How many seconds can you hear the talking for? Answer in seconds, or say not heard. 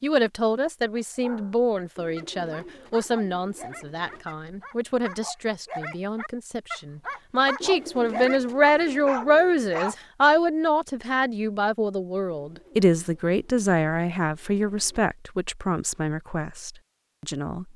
18 s.